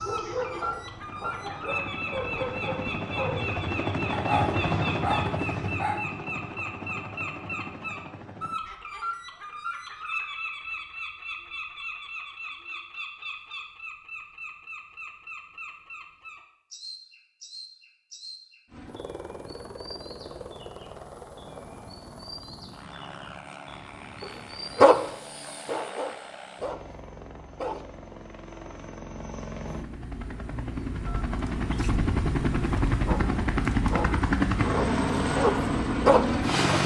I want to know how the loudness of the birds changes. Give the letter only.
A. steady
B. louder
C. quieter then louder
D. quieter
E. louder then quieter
D.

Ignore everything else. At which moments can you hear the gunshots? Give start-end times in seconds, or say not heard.
not heard.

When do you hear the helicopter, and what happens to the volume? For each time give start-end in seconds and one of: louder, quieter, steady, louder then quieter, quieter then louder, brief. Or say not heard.
0.0-8.6 louder then quieter
18.6-36.8 louder.